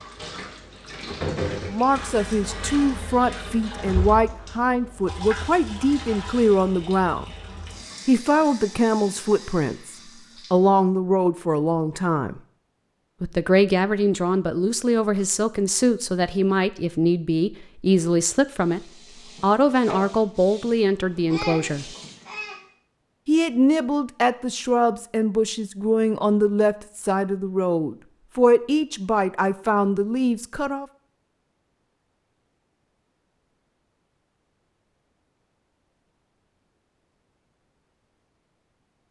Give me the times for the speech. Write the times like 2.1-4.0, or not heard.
1.6-7.2, 8.1-12.4, 13.2-21.9, 23.2-30.9.